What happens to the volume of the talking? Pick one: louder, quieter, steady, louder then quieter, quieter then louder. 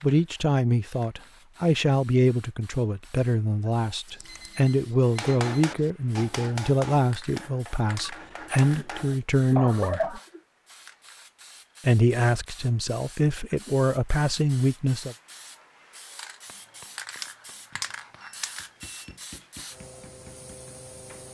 steady.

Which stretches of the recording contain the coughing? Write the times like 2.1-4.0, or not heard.
8.5-10.4.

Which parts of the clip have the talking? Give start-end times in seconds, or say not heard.
0.0-10.2, 11.8-15.2.